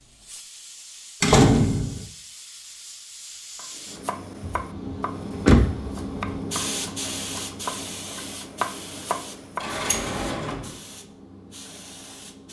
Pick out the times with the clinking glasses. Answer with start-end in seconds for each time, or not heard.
not heard.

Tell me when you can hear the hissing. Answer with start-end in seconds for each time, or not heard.
0.0-12.4.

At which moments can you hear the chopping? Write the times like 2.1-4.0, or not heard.
3.5-9.7.